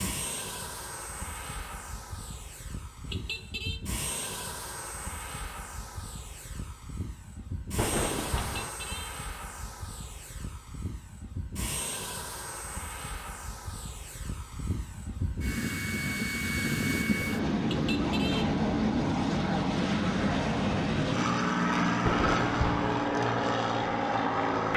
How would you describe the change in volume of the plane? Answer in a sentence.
The loudness of the plane goes up.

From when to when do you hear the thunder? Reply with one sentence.
The thunder can be heard from 7.8 to 8.7 s and from 22.1 to 22.9 s.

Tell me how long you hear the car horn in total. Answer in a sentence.
The car horn can be heard for 2 seconds in total.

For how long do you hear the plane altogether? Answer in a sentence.
The plane can be heard for 25 seconds in total.